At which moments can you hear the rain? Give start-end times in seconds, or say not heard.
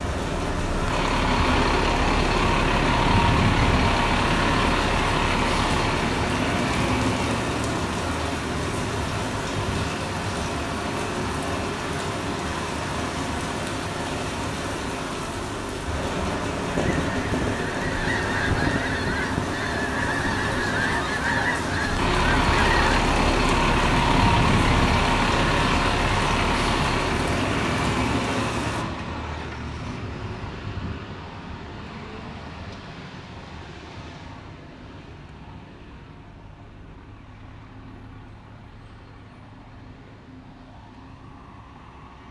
0.0-28.9.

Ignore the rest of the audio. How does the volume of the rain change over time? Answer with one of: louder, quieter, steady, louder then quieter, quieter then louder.
steady.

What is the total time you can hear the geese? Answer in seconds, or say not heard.
6 s.